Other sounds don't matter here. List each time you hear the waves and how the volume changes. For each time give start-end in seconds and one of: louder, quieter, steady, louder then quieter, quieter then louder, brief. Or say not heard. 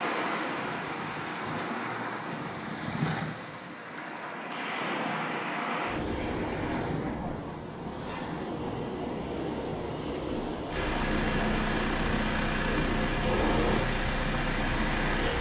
0.0-15.3 steady.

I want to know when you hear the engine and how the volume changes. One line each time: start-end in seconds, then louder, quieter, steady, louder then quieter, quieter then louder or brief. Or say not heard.
10.7-15.3 steady.